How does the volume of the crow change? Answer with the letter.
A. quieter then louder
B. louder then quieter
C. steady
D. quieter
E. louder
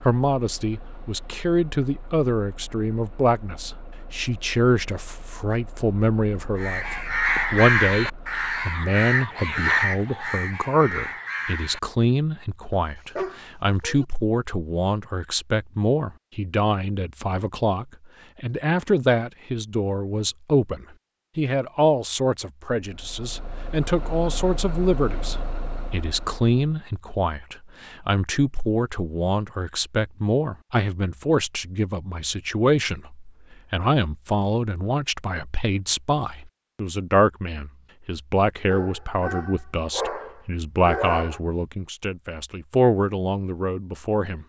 D.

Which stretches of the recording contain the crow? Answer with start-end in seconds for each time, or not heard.
6.5-11.8.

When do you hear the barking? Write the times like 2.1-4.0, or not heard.
12.7-14.1, 38.7-41.4.